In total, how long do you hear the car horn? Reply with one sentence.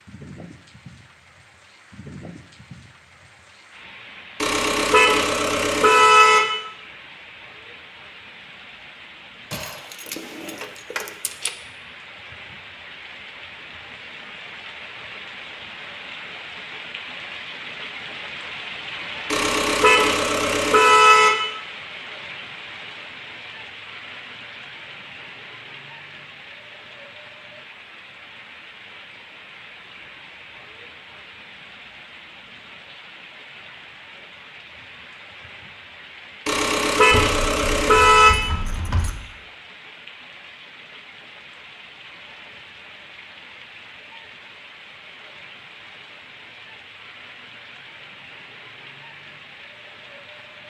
You can hear the car horn for 6 seconds altogether.